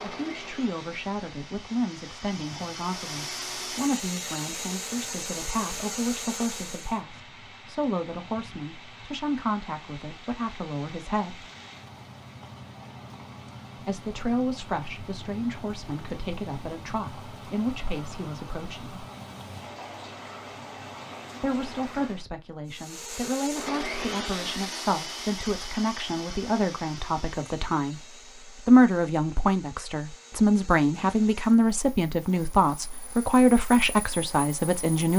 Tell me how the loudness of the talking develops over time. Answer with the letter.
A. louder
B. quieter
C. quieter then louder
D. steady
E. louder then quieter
A.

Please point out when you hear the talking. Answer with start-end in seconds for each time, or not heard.
0.0-11.4, 13.8-19.1, 21.4-28.0, 28.6-35.1.